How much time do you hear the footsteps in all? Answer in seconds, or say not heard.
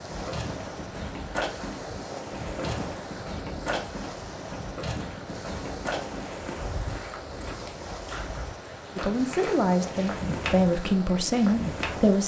12 s.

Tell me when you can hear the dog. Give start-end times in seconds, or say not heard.
not heard.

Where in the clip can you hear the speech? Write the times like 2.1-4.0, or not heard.
8.9-12.2.